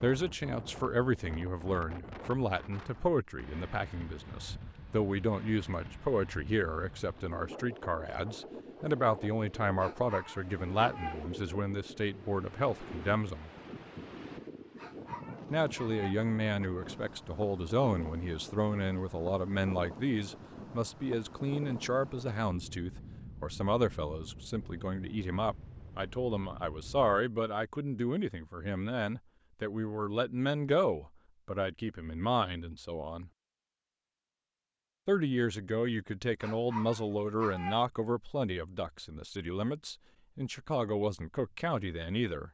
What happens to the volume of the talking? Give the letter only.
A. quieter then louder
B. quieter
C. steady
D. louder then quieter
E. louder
C.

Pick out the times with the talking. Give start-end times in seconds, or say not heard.
0.0-13.5, 15.5-33.3, 35.0-42.4.